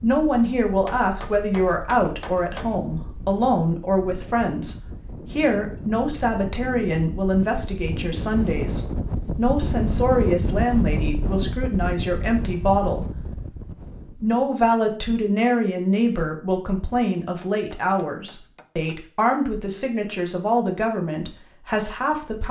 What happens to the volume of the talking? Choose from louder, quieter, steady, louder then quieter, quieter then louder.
steady.